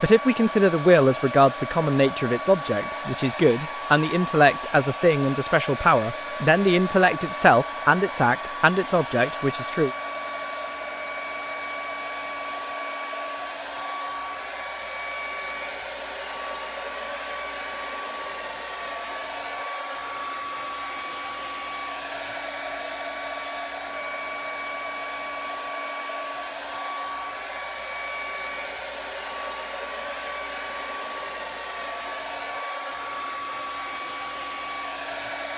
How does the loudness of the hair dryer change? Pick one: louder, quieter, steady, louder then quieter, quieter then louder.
steady.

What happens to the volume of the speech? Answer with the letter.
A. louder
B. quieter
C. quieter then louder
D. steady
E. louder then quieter
D.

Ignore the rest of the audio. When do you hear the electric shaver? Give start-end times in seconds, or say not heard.
not heard.